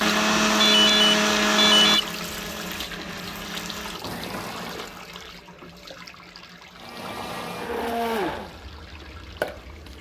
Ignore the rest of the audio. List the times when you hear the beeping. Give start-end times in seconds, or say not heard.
0.6-2.0.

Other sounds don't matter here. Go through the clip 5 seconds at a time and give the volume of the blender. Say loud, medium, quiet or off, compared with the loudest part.
loud, medium.